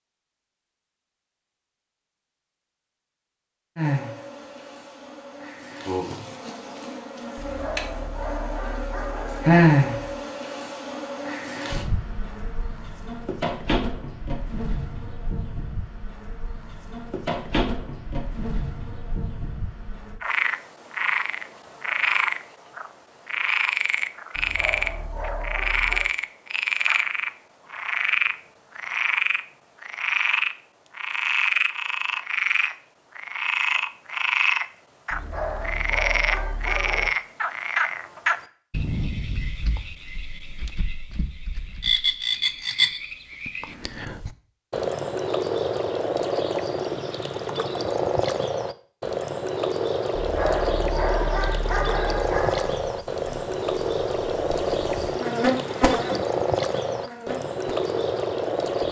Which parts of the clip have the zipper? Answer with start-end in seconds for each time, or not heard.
not heard.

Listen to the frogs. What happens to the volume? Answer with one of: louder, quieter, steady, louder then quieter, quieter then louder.
steady.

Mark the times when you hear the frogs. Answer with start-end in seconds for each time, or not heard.
20.2-58.8.